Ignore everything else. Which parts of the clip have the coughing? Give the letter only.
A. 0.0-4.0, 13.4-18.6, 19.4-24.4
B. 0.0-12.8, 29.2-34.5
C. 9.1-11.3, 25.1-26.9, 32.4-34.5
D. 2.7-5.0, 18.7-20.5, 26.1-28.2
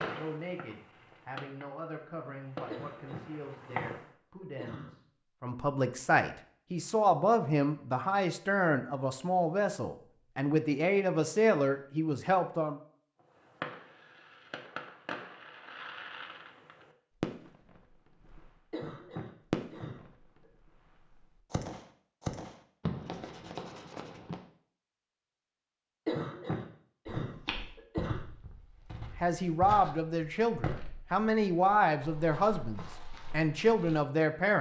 D.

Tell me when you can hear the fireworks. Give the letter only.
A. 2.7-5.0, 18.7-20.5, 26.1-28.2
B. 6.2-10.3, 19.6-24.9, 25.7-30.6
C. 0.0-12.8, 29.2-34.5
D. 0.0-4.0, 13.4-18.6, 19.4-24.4
D.